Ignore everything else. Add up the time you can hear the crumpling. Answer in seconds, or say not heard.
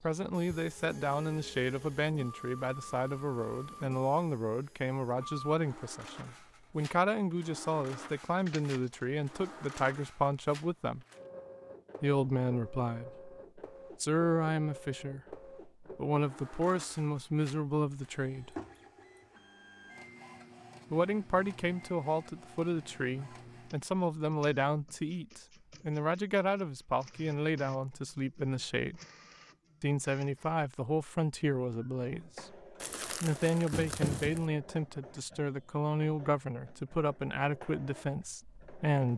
3 s.